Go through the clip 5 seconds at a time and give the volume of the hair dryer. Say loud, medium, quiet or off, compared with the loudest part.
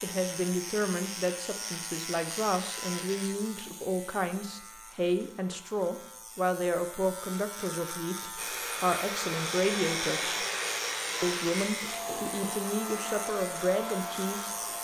off, loud, loud.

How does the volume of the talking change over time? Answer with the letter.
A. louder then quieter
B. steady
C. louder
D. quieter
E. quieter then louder
B.